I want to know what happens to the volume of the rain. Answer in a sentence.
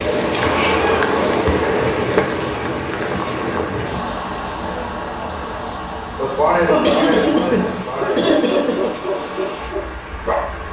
The loudness of the rain goes down.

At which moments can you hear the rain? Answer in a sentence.
The rain can be heard from 0.0 to 10.6 s.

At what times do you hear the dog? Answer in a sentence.
The dog can be heard from 8.0 to 10.6 s.